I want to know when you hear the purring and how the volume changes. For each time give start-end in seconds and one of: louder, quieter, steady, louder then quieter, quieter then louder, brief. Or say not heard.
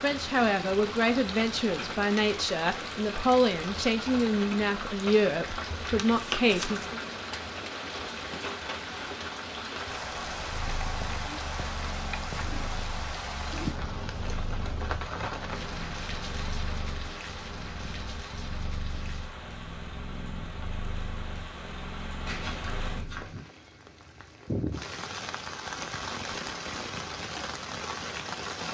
10.2-23.1 steady.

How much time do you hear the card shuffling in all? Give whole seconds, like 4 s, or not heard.
2 s.